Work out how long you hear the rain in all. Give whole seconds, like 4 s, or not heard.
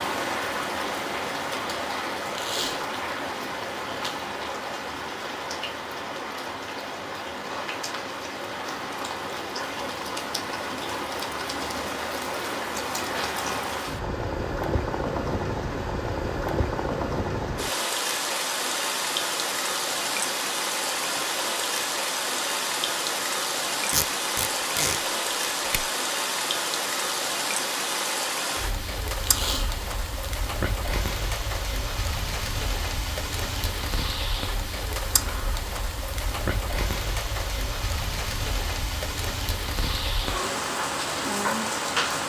42 s.